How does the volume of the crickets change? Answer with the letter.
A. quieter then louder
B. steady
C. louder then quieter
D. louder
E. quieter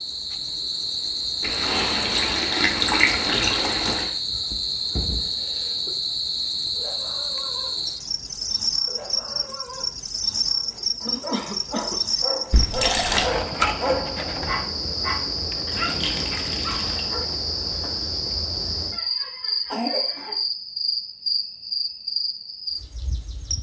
B.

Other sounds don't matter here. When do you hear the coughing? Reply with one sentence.
You can hear the coughing from 4.2 to 6.0 s, from 11.1 to 12.2 s and from 18.9 to 20.4 s.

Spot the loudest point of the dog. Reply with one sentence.
The volume of the dog peaks at 14 seconds.